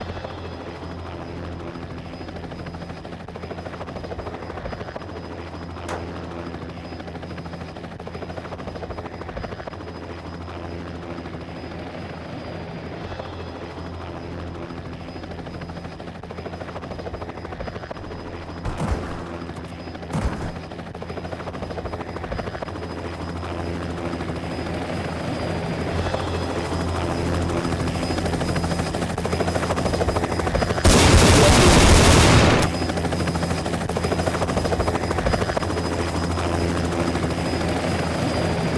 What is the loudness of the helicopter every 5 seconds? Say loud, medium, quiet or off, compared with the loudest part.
medium, medium, medium, medium, medium, loud, loud, loud.